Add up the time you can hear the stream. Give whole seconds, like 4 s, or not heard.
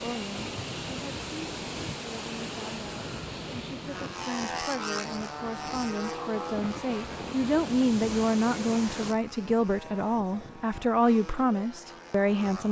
9 s.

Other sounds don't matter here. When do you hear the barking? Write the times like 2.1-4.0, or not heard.
not heard.